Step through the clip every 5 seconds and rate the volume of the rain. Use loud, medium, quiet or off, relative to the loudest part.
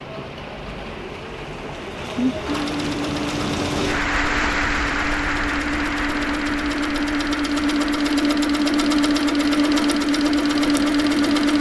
loud, loud, medium.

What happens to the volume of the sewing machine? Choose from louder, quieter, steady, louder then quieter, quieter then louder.
louder.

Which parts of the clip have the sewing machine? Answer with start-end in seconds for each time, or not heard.
2.5-11.5.